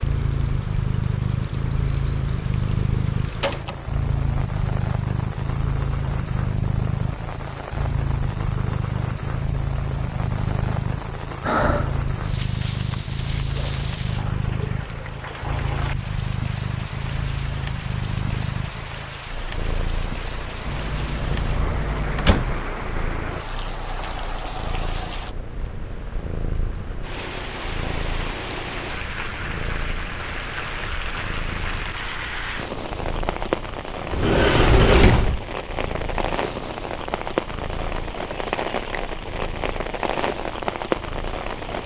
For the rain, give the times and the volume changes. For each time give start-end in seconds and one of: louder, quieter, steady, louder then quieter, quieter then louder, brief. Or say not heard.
0.0-41.8 louder.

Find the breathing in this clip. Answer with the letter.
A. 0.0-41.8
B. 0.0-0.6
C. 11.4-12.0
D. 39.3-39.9
C.